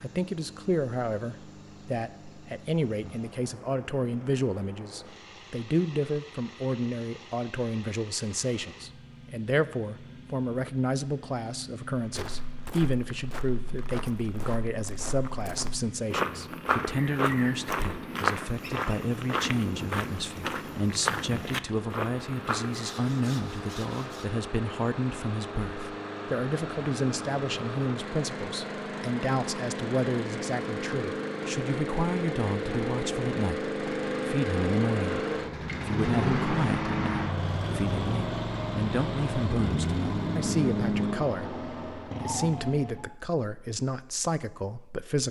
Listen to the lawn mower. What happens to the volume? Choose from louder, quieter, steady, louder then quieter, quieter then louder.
louder.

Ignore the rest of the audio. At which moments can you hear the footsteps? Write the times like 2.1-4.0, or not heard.
11.9-22.9.